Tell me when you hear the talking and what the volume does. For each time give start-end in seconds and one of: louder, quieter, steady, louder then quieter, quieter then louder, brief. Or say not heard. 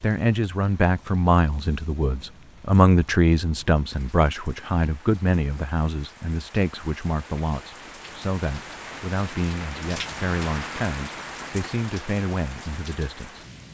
0.0-13.4 quieter.